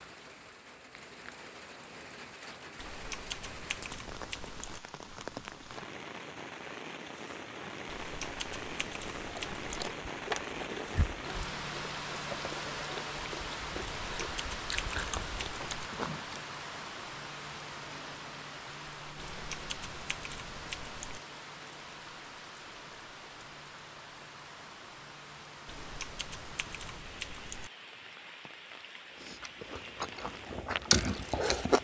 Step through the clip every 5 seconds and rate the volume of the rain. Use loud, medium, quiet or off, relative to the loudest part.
medium, loud, loud, loud, medium, medium, medium.